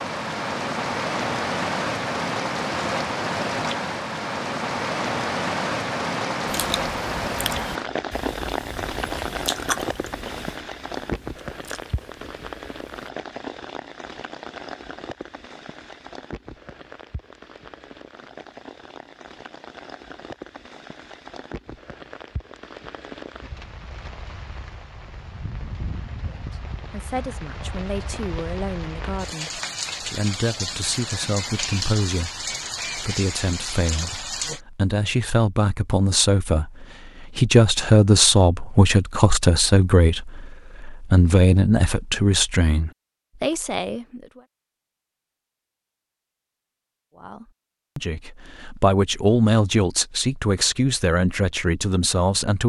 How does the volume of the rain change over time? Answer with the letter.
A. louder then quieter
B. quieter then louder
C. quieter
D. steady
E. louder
B.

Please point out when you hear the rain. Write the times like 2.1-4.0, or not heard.
0.0-34.6.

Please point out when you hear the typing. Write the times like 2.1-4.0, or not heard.
not heard.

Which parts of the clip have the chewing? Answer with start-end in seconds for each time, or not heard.
6.5-13.1.